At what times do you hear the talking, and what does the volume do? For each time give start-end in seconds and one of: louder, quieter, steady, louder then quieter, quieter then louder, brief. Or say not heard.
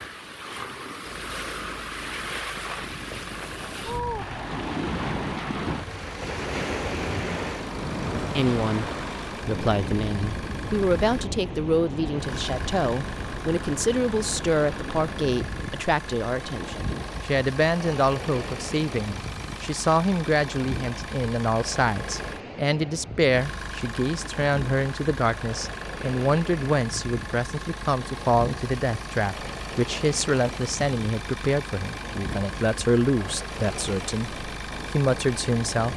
8.1-35.9 steady.